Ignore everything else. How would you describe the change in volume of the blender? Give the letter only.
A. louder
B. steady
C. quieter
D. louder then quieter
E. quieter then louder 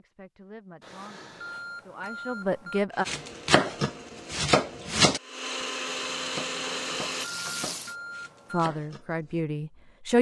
A.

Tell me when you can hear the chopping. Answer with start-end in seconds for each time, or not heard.
3.0-9.3.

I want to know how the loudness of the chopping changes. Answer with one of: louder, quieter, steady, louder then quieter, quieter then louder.
quieter.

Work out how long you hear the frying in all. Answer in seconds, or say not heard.
2 s.